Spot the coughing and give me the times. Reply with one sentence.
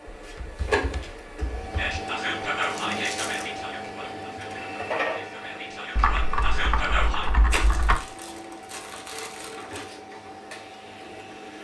You can't hear the coughing here.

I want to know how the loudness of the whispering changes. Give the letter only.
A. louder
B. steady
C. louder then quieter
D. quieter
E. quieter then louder
E.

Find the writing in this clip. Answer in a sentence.
The writing can't be heard in this clip.